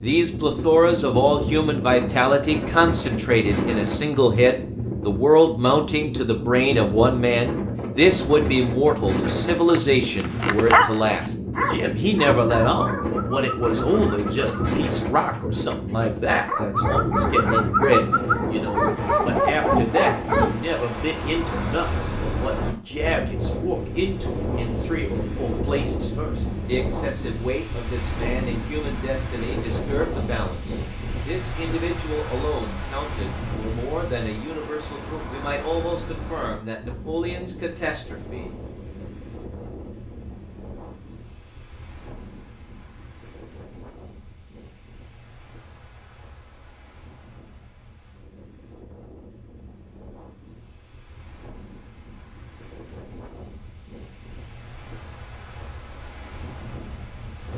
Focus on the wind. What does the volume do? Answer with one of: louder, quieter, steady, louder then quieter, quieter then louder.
quieter.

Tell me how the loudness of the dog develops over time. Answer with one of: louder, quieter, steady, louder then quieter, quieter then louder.
quieter then louder.